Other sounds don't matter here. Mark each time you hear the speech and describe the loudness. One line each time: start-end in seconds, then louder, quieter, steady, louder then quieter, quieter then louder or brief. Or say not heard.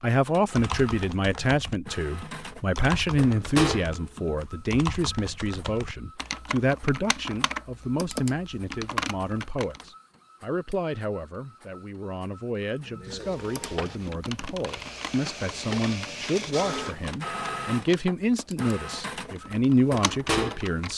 0.0-20.9 quieter then louder.